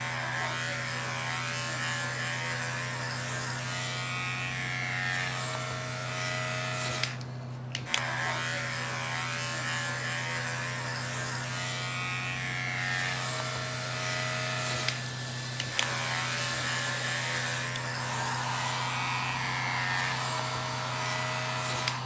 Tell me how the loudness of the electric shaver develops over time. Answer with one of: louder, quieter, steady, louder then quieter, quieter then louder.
steady.